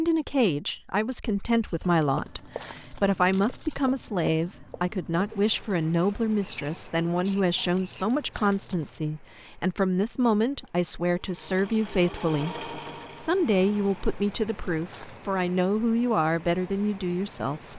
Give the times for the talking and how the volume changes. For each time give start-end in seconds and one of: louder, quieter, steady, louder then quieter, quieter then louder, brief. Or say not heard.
0.0-17.7 steady.